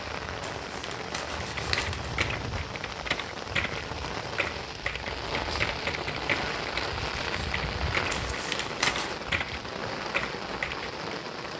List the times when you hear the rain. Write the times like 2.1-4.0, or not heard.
0.0-11.5.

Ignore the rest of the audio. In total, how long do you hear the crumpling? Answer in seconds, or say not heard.
3 s.